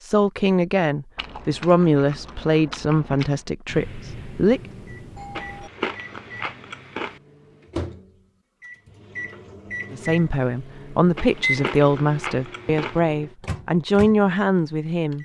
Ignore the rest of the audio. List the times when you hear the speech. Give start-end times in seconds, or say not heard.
0.0-4.6, 9.9-15.2.